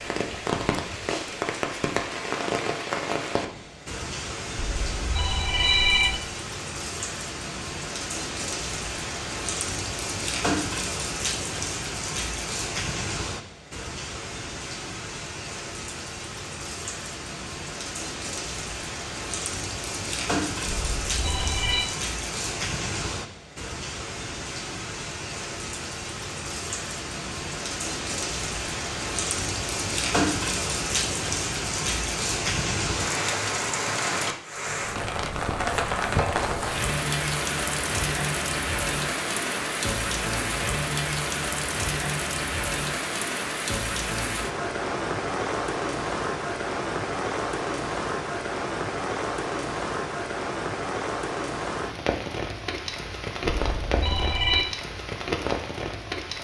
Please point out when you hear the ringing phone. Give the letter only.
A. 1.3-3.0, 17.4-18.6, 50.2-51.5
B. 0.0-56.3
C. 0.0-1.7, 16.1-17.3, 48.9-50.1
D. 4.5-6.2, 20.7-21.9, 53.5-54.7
D.